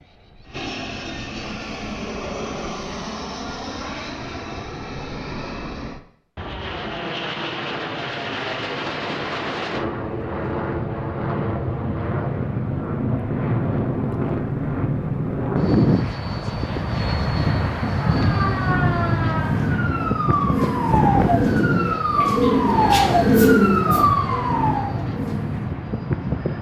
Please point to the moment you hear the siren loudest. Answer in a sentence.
The loudest moment of the siren is at 23 seconds.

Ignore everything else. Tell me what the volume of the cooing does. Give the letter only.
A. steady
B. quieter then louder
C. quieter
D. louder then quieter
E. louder
D.